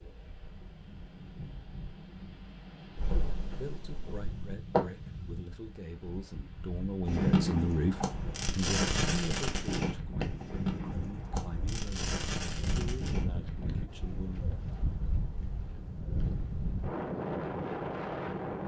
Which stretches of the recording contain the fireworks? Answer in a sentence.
You can hear the fireworks from 3.0 to 4.8 s and from 7.0 to 13.2 s.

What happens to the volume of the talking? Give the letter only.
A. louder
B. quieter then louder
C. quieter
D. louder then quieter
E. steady
D.